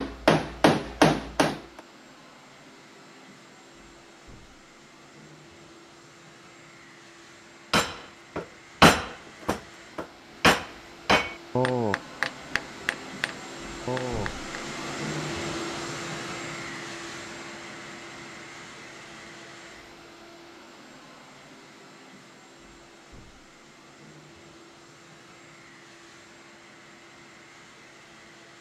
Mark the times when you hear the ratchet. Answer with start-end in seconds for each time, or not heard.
not heard.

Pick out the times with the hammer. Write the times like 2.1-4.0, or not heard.
0.0-1.6, 7.7-14.3.